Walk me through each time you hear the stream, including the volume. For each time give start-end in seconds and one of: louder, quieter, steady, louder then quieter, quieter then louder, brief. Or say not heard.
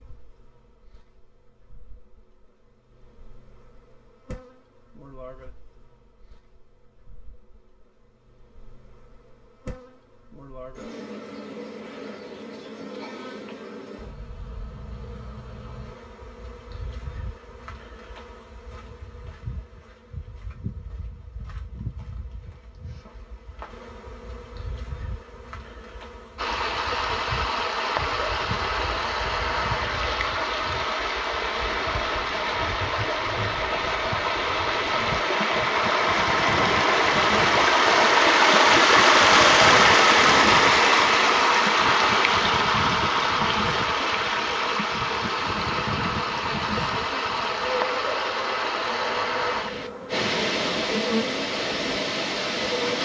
26.4-52.9 louder then quieter.